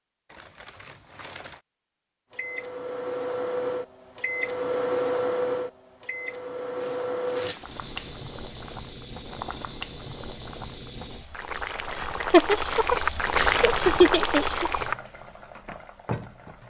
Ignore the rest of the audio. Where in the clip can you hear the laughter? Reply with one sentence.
The laughter can be heard from 11.9 to 14.7 s.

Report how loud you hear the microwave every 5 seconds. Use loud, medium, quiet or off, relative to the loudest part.
loud, loud, off, off.